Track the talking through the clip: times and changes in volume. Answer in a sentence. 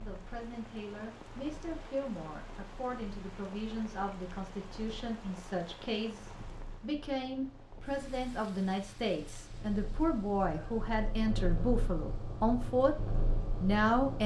The talking can be heard from 0.0 to 12.9 s, getting louder; and briefly from 13.6 to 14.2 s.